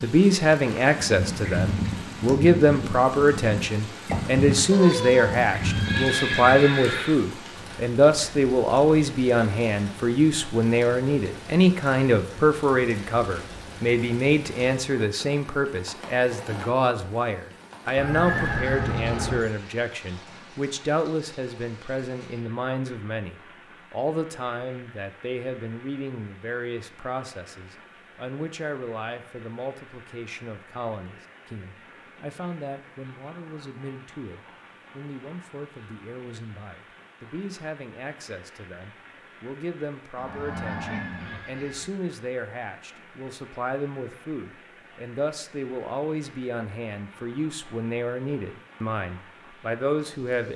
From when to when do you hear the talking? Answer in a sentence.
You can hear the talking from 0.0 to 50.5 s.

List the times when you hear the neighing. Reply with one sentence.
You can hear the neighing from 4.7 to 7.2 s, from 17.9 to 19.4 s and from 40.1 to 41.9 s.